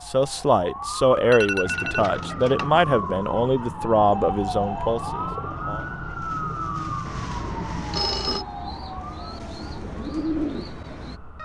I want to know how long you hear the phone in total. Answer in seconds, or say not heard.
2 s.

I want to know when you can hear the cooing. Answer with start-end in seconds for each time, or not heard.
1.6-11.2.